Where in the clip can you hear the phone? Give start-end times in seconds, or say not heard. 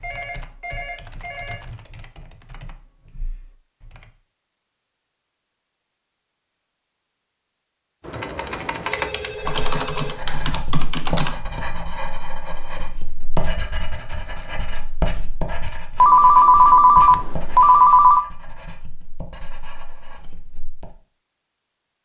0.0-1.6, 8.0-10.2, 16.0-18.2.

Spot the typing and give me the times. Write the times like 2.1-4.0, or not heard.
0.0-4.2, 8.0-11.3.